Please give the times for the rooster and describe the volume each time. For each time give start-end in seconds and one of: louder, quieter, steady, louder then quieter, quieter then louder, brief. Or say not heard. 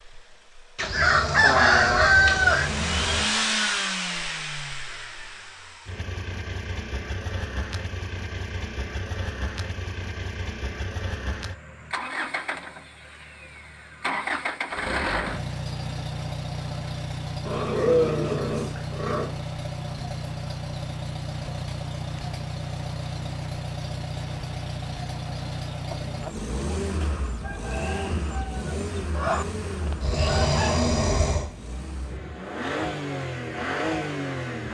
0.8-2.7 brief
25.9-30.9 louder then quieter.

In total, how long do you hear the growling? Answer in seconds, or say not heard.
6 s.